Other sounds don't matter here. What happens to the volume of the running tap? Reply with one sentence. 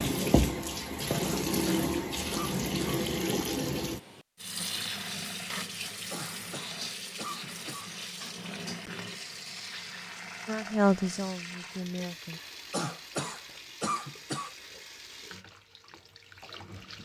The volume of the running tap goes down.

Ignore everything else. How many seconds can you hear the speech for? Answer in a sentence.
You can hear the speech for 2 seconds altogether.